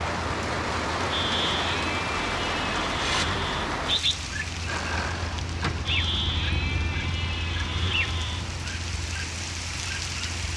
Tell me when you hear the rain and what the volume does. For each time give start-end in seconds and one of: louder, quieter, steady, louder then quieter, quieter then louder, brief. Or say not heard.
0.0-10.5 quieter.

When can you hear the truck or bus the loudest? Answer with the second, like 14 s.
5 s.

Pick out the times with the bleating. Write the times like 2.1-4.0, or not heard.
1.1-3.5, 5.8-8.4.